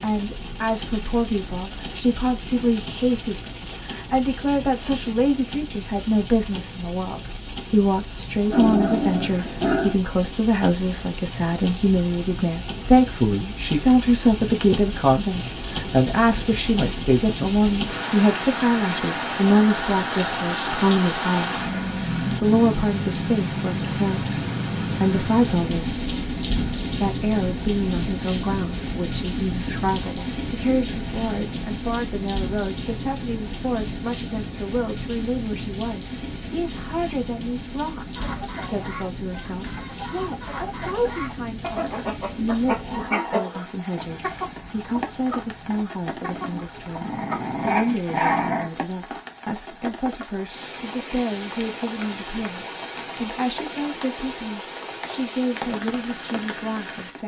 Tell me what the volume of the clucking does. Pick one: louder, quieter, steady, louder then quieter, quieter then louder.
louder then quieter.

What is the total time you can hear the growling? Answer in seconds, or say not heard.
4 s.